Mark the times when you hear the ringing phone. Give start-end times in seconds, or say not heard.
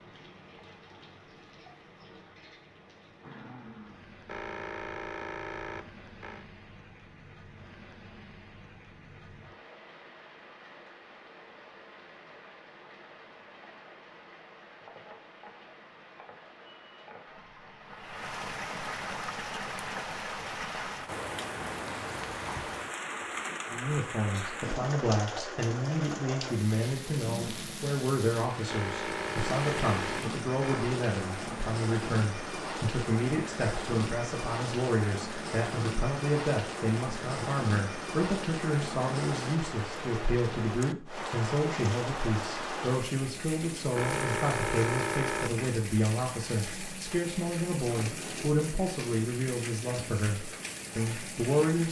4.2-6.5, 28.6-30.9, 44.0-45.7.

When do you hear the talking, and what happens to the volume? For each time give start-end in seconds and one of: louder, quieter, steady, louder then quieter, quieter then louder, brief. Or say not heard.
23.7-51.8 steady.